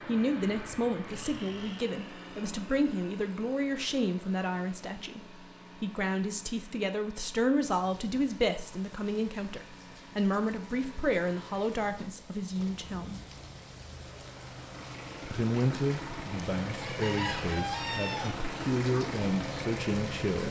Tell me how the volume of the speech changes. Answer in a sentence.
The loudness of the speech stays about the same.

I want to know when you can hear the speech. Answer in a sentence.
The speech can be heard from 0.1 to 13.2 s and from 15.3 to 20.4 s.